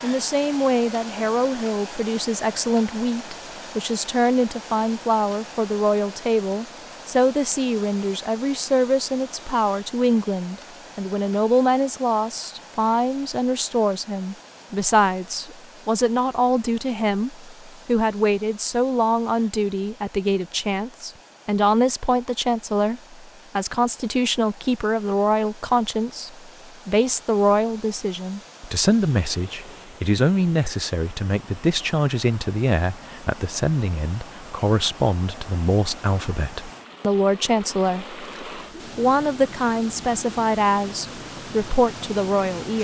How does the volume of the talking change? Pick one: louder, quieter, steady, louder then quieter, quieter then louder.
steady.